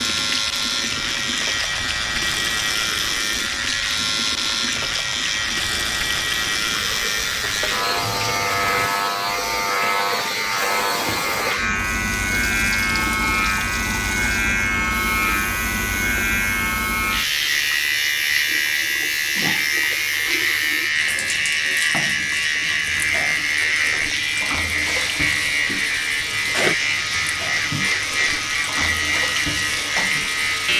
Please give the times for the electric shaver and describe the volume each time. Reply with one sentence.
You can hear the electric shaver from 0.0 to 30.7 s, at a steady volume.